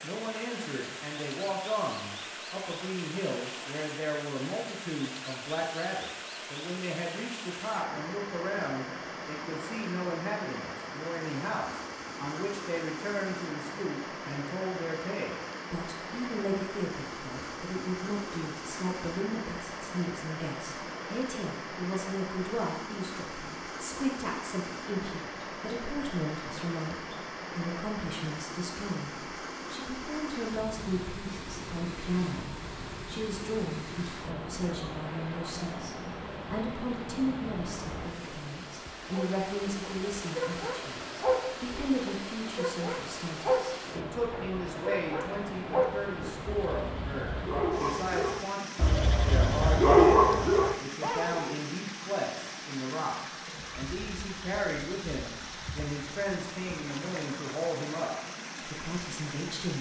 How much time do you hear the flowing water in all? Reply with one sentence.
The flowing water can be heard for 60 seconds in total.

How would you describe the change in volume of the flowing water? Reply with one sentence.
The loudness of the flowing water stays about the same.